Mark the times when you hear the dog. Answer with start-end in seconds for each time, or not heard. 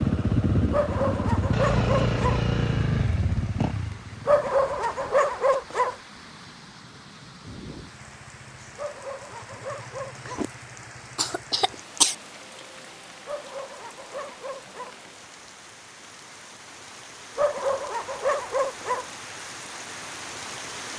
0.7-2.4, 4.2-6.0, 8.8-10.4, 13.2-14.9, 17.4-19.1.